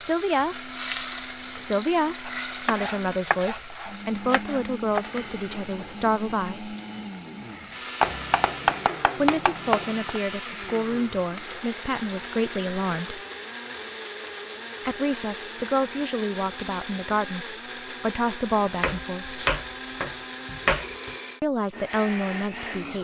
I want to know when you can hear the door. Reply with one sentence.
The door can't be heard in this clip.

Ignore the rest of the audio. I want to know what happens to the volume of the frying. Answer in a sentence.
The loudness of the frying goes down.